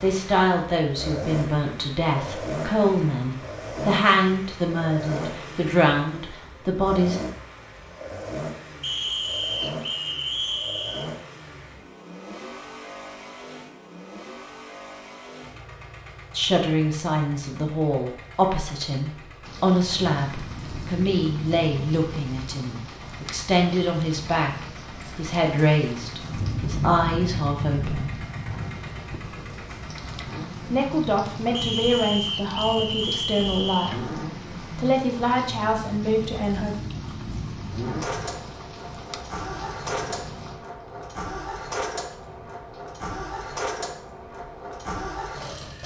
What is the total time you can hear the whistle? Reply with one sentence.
The whistle can be heard for 5 seconds in total.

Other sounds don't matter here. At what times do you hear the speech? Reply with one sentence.
The speech can be heard from 0.0 to 7.2 s, from 16.3 to 28.1 s and from 30.6 to 36.8 s.